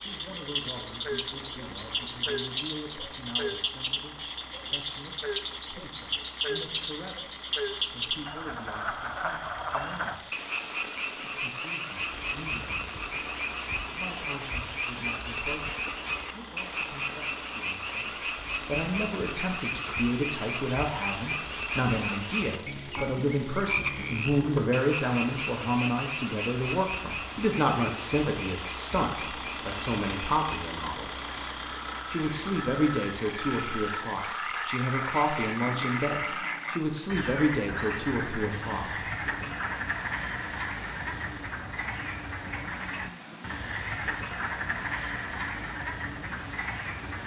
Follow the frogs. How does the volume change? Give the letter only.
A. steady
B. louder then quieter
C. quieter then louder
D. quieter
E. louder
A.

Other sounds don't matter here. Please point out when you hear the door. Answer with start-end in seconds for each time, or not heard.
not heard.